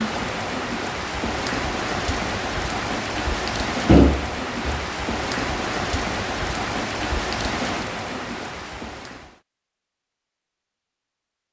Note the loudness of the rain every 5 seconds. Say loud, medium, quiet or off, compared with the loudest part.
loud, loud, off.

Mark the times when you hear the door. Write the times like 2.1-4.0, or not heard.
3.9-4.8.